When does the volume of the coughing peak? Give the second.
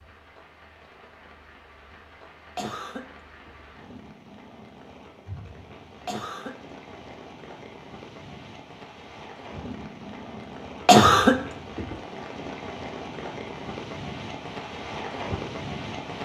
11 s.